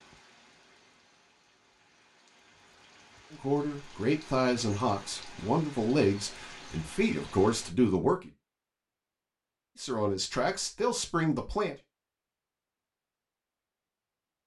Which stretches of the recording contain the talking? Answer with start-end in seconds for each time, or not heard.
3.3-8.3, 9.8-11.8.